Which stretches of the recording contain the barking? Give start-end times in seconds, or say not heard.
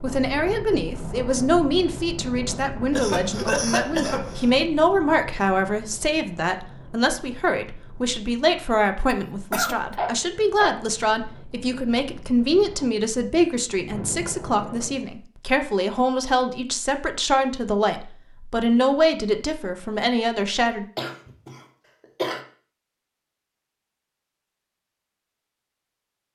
9.9-10.8.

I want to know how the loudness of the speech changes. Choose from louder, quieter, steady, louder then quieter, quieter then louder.
steady.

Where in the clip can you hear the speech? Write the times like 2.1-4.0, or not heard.
0.0-20.9.